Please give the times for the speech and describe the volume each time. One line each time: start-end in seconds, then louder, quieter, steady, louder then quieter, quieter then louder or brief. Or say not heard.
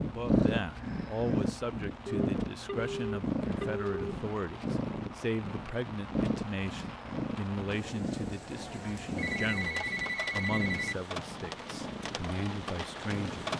0.1-13.5 steady.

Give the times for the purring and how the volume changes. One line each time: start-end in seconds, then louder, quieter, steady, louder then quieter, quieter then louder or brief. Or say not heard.
0.0-13.5 quieter.